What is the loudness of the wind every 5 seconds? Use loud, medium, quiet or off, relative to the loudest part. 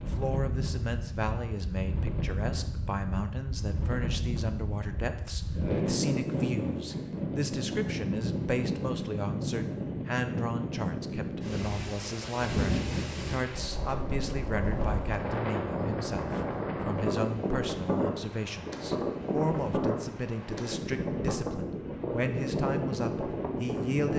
medium, loud, loud, loud, loud.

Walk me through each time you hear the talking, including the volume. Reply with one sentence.
The talking can be heard from 0.0 to 24.1 s, at a steady volume.